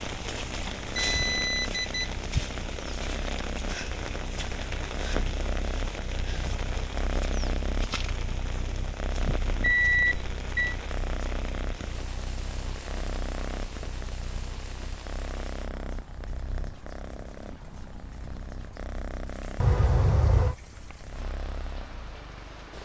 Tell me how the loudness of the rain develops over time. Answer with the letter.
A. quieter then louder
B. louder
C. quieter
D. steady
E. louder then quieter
C.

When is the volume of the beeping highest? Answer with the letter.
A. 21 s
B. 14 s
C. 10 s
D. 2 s
C.